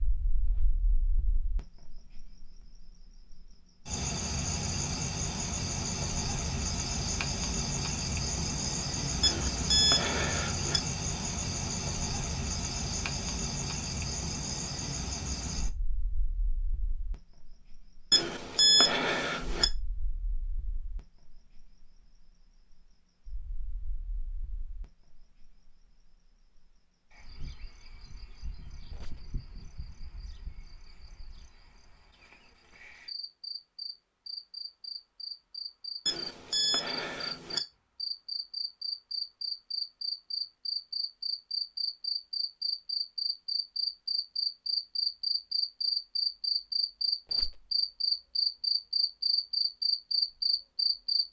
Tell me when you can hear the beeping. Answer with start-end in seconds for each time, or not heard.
9.2-10.8, 18.1-19.6, 36.0-37.6.